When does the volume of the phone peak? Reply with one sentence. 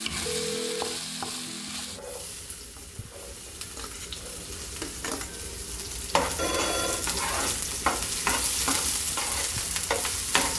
The volume of the phone peaks at 7 seconds.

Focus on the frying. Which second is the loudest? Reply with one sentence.
The loudest moment of the frying is at 8 seconds.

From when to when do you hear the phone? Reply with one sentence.
You can hear the phone from 0.2 to 1.0 s and from 6.3 to 7.0 s.